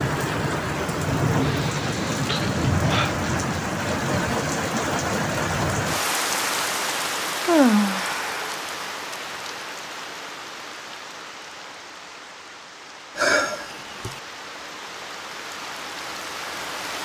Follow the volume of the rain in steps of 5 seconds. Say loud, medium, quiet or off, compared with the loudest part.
loud, loud, quiet, medium.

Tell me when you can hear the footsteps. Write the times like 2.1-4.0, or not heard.
not heard.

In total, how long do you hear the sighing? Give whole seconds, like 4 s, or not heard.
4 s.